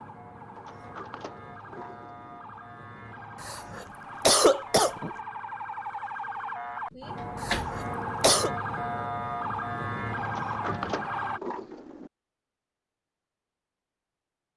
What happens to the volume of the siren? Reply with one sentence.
The volume of the siren goes up.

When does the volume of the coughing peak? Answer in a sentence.
The loudest moment of the coughing is at 4 seconds.